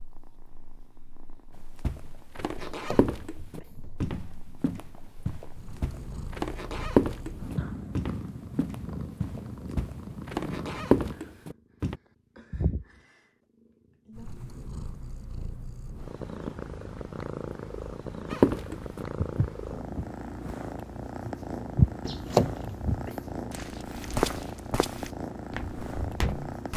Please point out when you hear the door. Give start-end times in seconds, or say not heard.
2.5-4.0, 22.1-23.4.